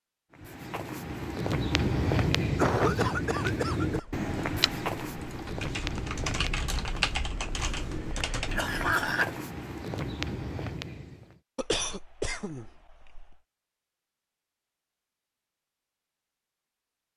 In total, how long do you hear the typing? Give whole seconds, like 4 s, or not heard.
5 s.